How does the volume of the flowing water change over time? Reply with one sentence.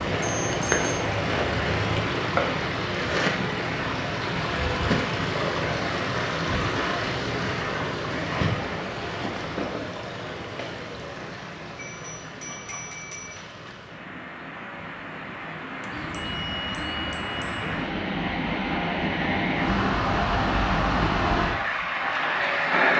The volume of the flowing water goes down, then up.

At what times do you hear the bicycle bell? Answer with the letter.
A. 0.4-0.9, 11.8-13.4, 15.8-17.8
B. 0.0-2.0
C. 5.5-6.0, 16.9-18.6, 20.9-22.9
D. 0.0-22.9
A.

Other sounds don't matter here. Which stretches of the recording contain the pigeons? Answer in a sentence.
You can hear the pigeons from 15.9 to 17.9 s.